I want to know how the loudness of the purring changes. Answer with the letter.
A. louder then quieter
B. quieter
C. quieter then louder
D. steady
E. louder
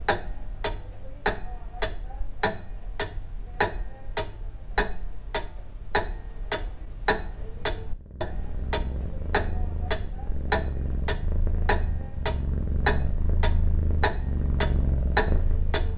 E.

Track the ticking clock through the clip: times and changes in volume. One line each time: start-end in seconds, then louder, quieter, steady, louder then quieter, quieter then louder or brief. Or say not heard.
0.0-15.9 steady.